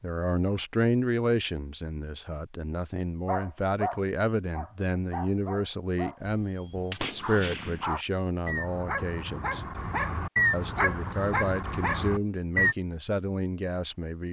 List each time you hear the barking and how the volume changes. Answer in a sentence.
You can hear the barking from 3.2 to 12.8 s, getting quieter then louder.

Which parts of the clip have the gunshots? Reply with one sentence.
The gunshots can be heard from 6.2 to 7.8 s.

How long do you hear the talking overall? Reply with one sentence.
The talking can be heard for 13 seconds in total.